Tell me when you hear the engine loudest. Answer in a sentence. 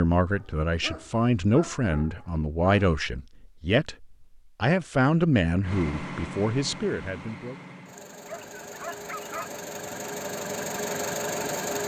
The loudest moment of the engine is at 11 seconds.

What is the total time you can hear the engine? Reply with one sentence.
You can hear the engine for 6 seconds altogether.